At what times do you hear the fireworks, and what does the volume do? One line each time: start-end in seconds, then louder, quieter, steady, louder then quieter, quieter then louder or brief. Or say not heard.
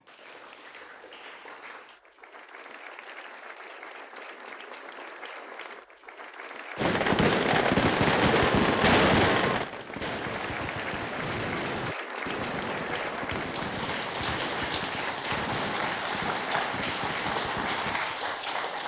6.8-18.0 quieter.